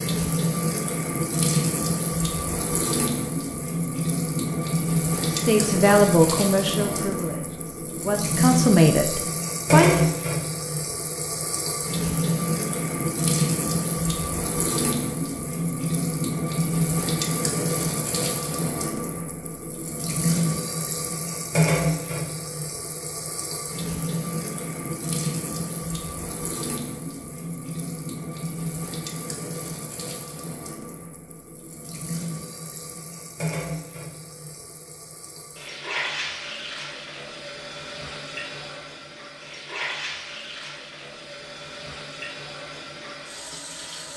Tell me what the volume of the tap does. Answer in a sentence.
The loudness of the tap goes down.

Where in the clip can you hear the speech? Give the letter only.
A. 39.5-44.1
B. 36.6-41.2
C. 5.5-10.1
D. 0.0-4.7
C.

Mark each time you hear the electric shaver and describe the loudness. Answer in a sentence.
You can't hear the electric shaver here.